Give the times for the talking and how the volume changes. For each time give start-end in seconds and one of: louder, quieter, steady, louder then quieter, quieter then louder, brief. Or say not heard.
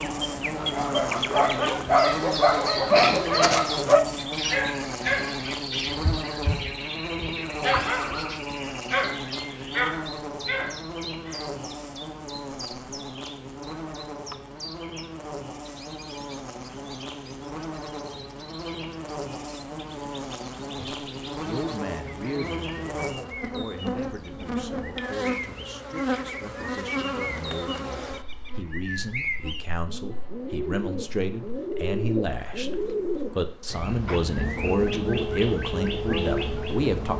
20.8-37.1 quieter then louder.